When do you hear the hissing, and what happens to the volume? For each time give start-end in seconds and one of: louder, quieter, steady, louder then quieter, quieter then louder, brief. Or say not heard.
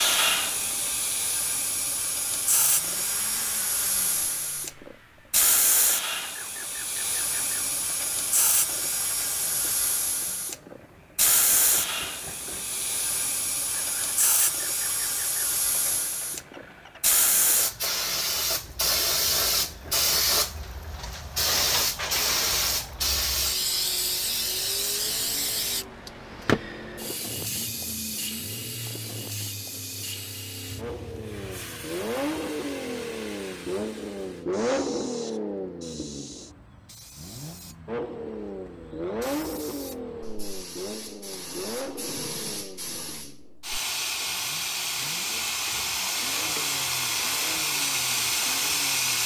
0.0-49.2 quieter then louder.